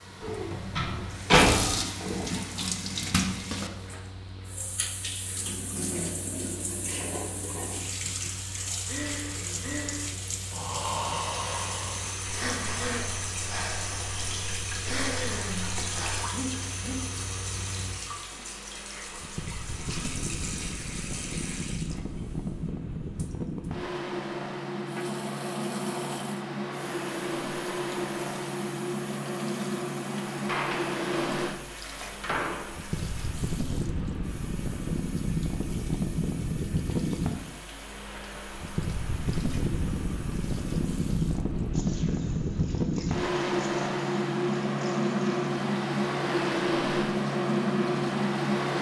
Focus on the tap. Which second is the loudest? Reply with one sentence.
The volume of the tap peaks at 2 seconds.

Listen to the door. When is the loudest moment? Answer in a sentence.
The loudest moment of the door is at 1 second.